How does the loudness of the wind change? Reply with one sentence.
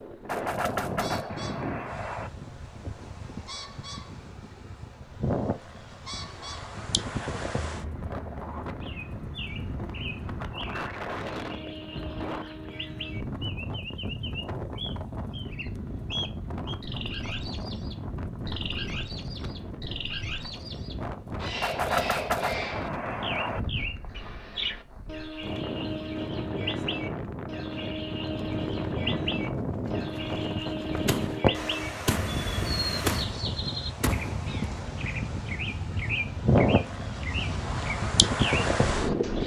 The loudness of the wind goes up.